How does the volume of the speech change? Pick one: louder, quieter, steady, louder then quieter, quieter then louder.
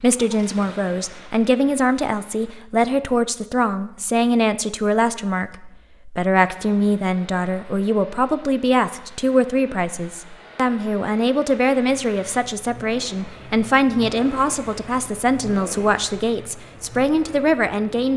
steady.